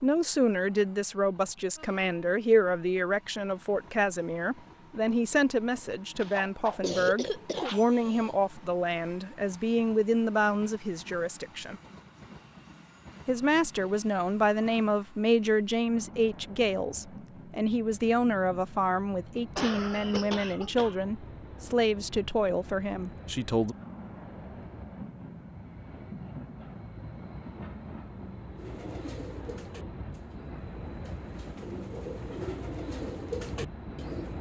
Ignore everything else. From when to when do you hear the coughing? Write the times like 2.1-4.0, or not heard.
6.2-8.3, 19.6-20.9.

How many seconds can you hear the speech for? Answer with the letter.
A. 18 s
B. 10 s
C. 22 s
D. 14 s
C.